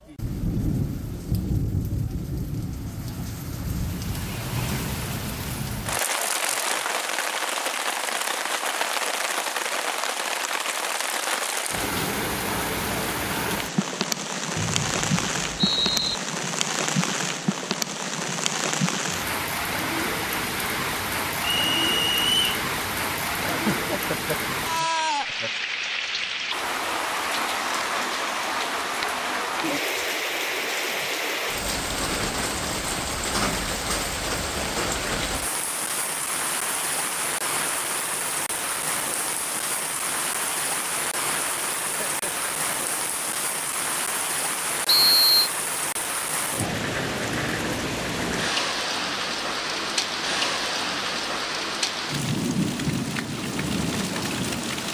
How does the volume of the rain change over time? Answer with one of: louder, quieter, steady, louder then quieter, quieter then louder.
steady.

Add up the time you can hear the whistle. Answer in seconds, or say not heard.
3 s.